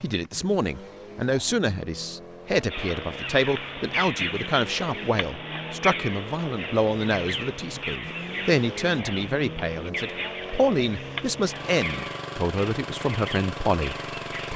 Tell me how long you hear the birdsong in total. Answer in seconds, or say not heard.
12 s.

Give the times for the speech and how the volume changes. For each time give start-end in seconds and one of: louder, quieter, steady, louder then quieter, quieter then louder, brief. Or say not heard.
0.0-14.5 steady.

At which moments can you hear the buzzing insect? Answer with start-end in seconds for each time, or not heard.
not heard.